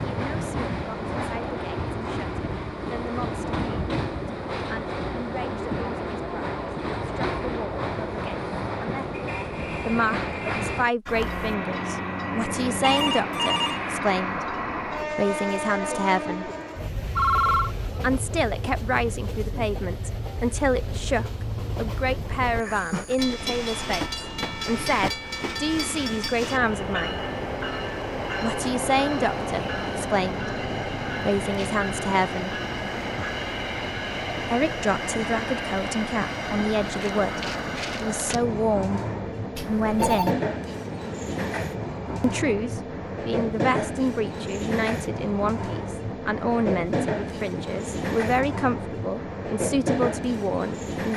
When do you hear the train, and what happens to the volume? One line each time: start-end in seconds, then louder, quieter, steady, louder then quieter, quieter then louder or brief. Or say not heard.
0.0-51.1 steady.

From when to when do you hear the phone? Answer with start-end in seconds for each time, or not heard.
12.8-13.8, 17.1-17.8, 39.5-40.4.